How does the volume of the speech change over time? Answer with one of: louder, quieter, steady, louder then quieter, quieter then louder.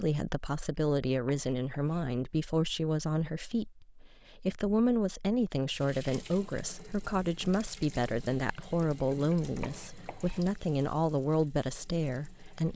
steady.